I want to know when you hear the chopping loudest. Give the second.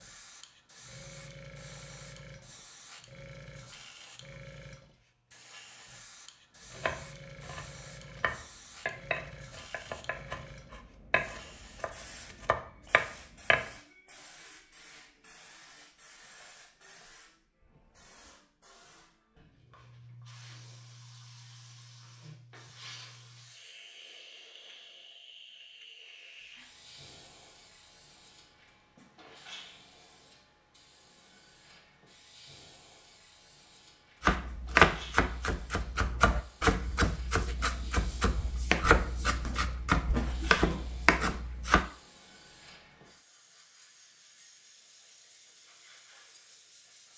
35 s.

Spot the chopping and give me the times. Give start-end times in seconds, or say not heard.
6.7-13.7, 34.2-41.9.